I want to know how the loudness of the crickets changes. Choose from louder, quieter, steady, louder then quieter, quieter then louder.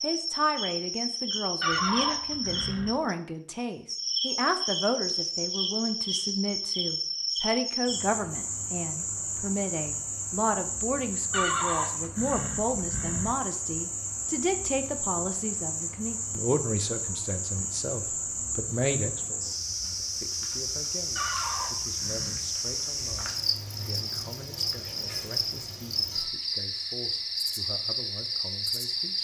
steady.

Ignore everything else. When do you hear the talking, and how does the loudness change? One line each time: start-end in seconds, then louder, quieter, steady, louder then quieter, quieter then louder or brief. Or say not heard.
0.0-29.1 quieter.